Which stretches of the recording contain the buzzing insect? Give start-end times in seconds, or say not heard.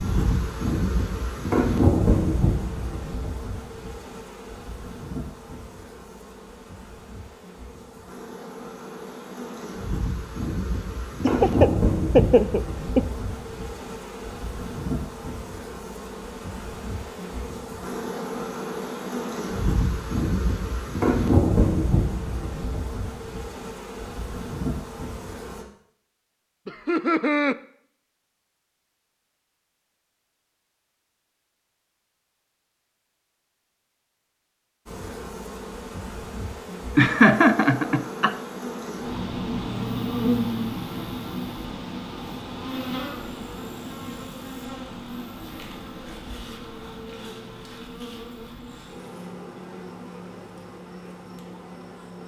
0.0-25.6, 34.9-52.2.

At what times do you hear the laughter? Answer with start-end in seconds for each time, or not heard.
11.2-13.0, 26.6-27.6, 37.0-38.4.